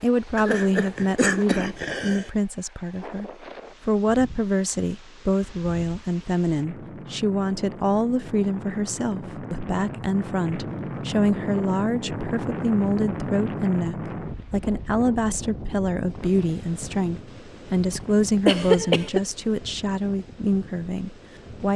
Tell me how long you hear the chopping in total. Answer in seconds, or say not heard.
not heard.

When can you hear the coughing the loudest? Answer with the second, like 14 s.
19 s.